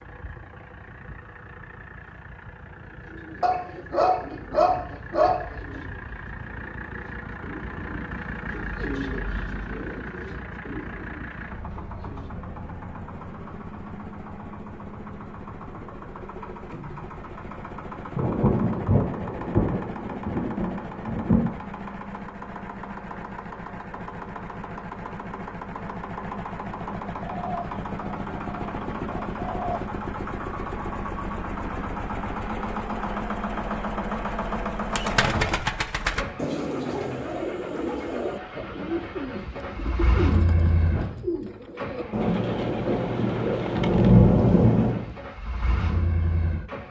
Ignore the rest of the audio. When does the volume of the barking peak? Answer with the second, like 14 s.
5 s.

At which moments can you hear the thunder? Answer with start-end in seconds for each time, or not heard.
18.1-21.5, 42.1-45.1.